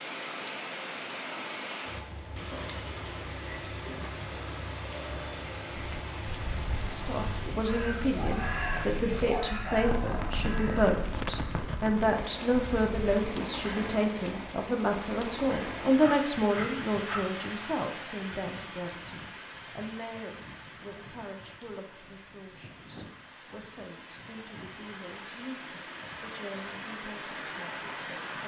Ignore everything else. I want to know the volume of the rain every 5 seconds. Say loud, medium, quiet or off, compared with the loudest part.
loud, loud, loud, loud, medium, loud.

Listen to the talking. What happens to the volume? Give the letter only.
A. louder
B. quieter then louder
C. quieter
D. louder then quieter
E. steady
C.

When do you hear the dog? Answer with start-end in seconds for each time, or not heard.
8.2-10.3, 16.0-17.2.